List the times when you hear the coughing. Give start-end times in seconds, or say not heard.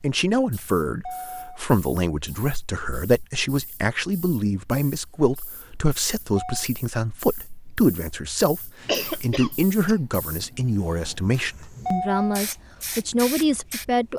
8.8-9.9.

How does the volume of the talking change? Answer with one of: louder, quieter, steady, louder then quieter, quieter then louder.
steady.